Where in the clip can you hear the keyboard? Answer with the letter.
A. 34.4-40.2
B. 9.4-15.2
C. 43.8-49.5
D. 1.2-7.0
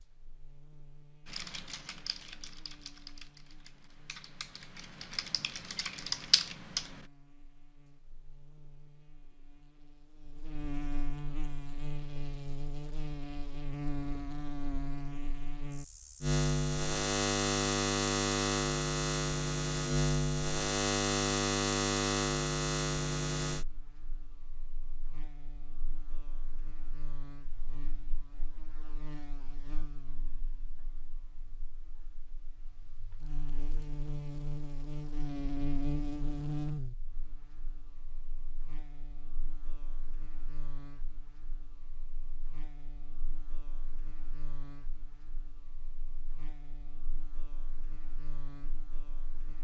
D.